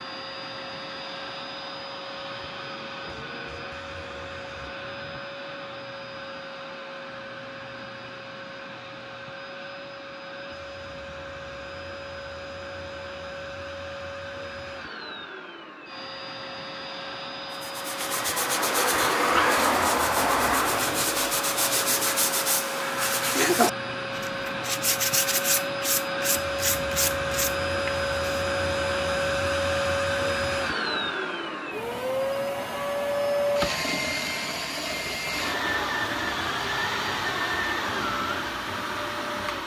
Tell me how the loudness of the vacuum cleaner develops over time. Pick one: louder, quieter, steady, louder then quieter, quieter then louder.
louder.